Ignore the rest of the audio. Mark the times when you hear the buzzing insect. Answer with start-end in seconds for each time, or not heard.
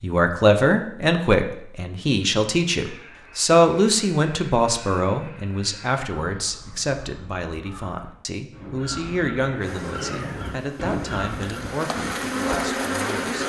9.6-13.4.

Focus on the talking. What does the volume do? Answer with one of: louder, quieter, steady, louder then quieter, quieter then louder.
quieter.